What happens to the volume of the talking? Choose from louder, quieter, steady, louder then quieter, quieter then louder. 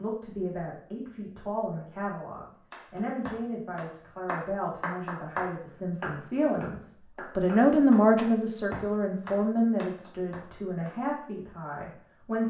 louder then quieter.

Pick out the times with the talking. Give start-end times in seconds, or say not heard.
0.0-12.4.